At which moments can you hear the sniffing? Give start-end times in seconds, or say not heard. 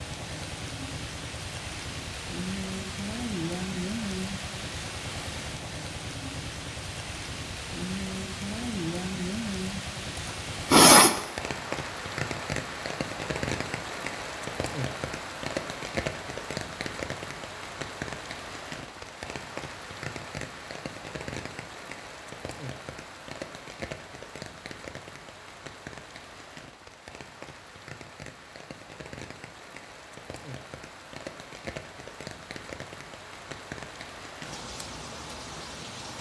10.2-11.1.